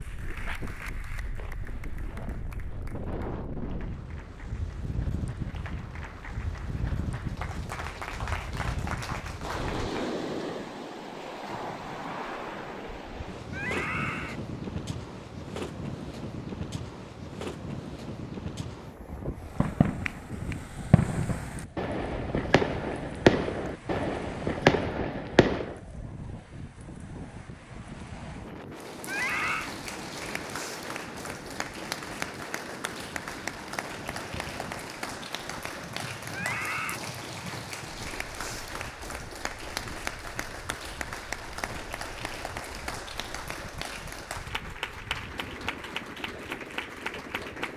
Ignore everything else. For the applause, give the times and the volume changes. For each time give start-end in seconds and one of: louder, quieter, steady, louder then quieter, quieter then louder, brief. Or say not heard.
0.0-10.2 quieter then louder
28.7-47.7 steady.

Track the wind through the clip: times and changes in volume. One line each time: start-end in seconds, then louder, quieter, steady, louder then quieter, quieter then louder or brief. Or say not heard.
0.0-47.7 quieter.